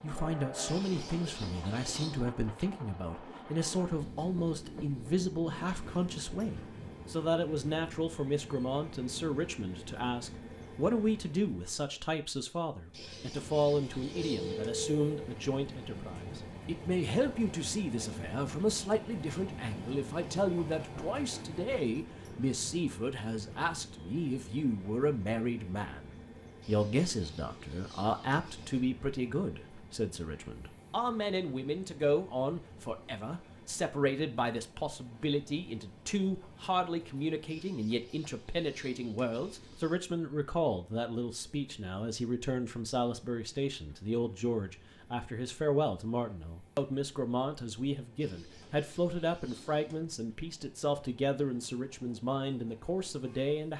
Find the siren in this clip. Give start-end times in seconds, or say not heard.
not heard.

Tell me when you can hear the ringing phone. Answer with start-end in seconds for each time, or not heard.
14.1-15.3.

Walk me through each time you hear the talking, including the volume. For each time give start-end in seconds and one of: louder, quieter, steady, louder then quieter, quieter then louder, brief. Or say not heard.
0.0-53.7 steady.